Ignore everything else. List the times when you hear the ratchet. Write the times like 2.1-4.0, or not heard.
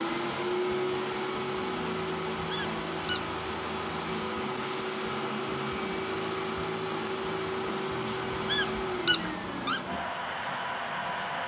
not heard.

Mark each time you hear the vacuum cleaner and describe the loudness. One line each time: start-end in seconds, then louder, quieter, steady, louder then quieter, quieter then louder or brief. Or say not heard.
0.0-11.4 steady.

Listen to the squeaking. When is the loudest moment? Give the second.
9 s.